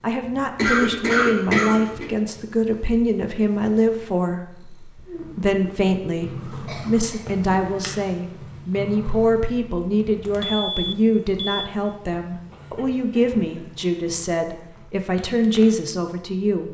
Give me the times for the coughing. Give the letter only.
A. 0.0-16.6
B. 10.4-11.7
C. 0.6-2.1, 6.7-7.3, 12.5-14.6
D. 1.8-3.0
C.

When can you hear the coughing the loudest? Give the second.
1 s.